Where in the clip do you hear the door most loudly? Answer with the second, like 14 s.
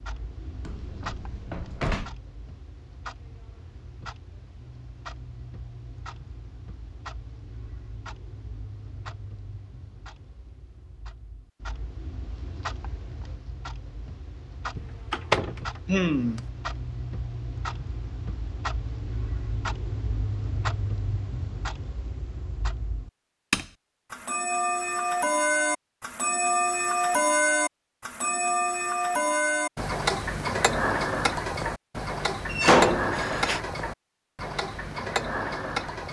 33 s.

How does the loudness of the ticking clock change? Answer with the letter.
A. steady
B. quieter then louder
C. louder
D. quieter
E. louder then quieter
C.